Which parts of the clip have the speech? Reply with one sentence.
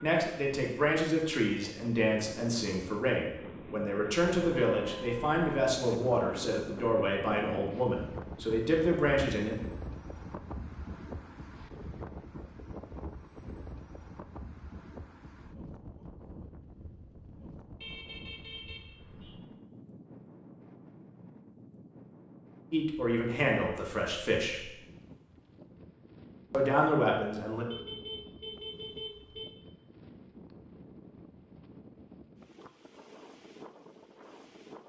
You can hear the speech from 0.0 to 9.6 s, from 22.7 to 24.6 s and from 26.5 to 27.6 s.